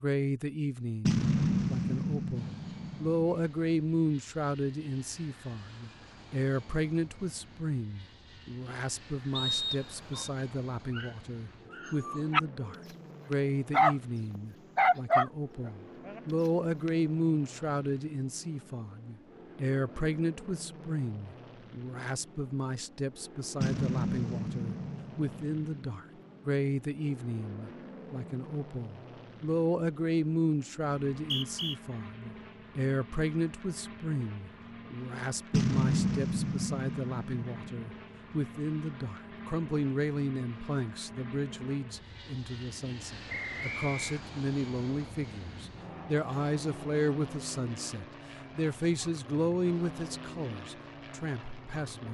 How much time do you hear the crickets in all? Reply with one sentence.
You can't hear the crickets here.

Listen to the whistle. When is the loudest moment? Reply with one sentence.
The loudest moment of the whistle is at 10 seconds.